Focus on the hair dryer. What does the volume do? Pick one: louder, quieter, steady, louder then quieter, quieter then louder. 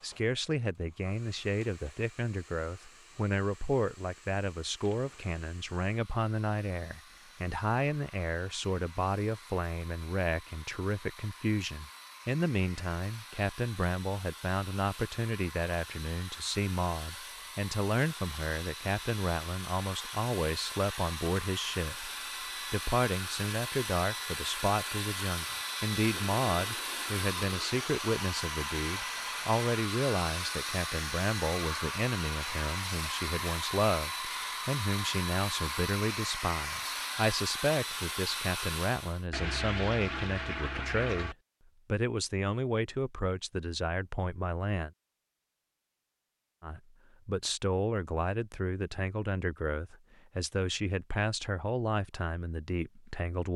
louder.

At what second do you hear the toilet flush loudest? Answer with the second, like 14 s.
40 s.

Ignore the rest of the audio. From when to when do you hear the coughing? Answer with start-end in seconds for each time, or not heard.
not heard.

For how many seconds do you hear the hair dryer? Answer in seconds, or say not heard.
39 s.